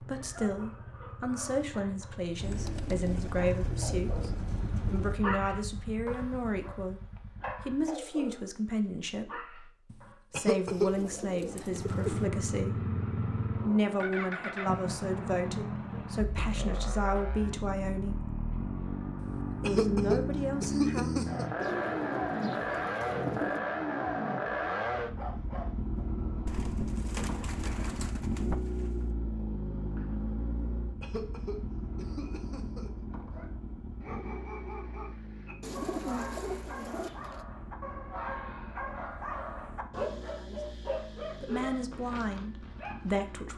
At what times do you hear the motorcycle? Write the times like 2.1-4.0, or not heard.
0.0-8.0, 11.7-43.5.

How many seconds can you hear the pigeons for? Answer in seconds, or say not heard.
11 s.